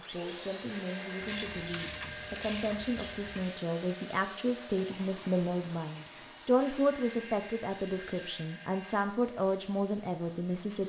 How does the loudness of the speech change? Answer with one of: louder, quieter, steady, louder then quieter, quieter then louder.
louder.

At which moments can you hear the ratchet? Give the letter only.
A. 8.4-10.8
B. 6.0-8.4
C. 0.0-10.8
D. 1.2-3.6
D.